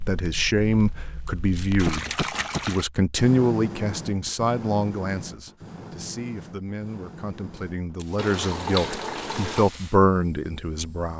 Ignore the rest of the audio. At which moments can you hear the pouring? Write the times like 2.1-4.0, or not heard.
1.8-2.9, 8.2-9.7.